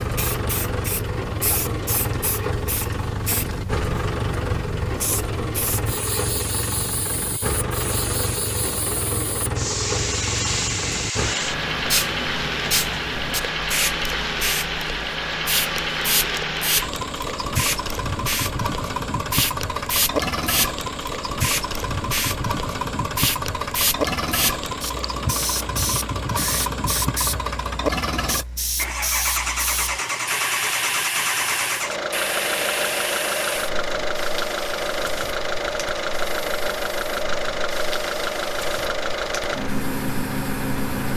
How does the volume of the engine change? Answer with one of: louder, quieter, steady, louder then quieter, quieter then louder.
steady.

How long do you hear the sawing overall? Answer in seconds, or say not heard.
not heard.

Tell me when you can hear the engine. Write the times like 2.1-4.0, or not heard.
0.0-41.1.